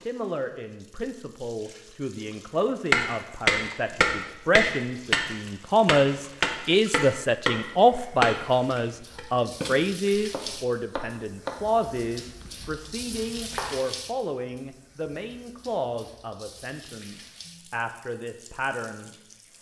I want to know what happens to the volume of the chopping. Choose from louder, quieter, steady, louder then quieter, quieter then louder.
quieter.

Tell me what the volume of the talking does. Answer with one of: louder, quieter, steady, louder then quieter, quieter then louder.
louder then quieter.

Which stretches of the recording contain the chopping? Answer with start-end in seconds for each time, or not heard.
2.9-13.8.